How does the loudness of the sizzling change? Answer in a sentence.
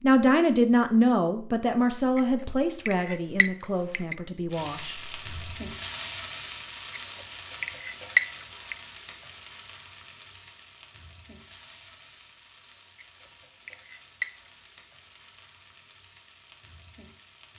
The volume of the sizzling goes down.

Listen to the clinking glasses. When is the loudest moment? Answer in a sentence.
The volume of the clinking glasses peaks at 8 seconds.